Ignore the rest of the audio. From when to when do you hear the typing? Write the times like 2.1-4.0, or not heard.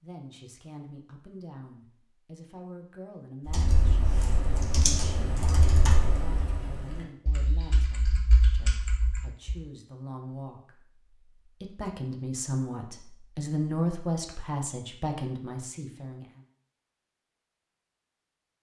3.5-9.6.